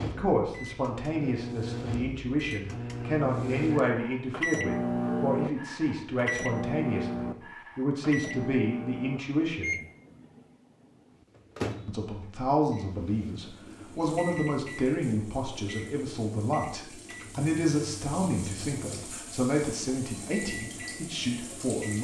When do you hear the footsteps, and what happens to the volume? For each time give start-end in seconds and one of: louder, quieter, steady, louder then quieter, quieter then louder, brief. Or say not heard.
not heard.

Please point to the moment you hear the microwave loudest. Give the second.
5 s.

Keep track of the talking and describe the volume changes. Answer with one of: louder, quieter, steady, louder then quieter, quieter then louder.
steady.